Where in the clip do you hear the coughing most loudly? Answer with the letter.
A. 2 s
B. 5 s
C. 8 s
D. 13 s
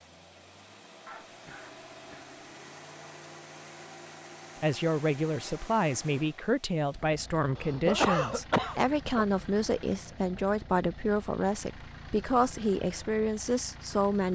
C.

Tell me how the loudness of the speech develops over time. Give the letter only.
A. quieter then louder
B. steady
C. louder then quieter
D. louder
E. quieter
B.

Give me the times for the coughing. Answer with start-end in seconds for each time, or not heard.
1.1-2.4, 7.5-9.2.